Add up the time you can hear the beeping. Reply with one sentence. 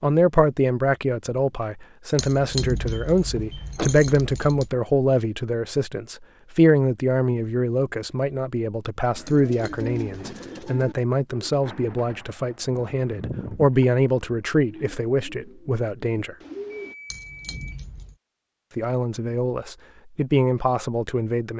The beeping can be heard for 2 seconds in total.